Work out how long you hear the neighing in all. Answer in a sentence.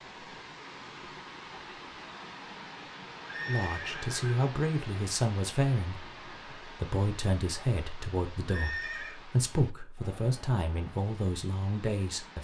The neighing can be heard for 2 seconds in total.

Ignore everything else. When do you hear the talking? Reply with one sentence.
The talking can be heard from 3.5 to 12.4 s.